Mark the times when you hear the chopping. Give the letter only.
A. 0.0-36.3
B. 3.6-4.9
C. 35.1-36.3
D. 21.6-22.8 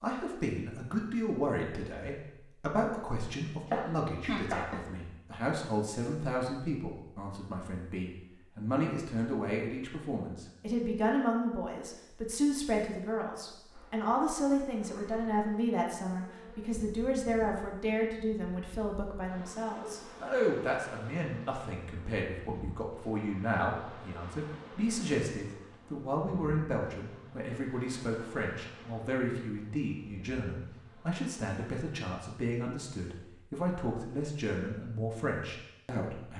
B.